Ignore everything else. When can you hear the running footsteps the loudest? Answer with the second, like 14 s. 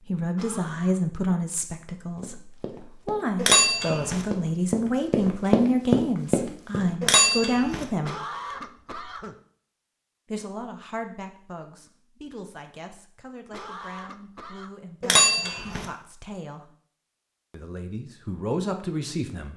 6 s.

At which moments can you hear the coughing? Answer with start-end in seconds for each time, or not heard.
0.3-1.0, 8.0-9.3, 13.5-14.8.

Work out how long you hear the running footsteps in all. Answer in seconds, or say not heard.
5 s.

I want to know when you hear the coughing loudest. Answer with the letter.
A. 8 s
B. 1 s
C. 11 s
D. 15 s
A.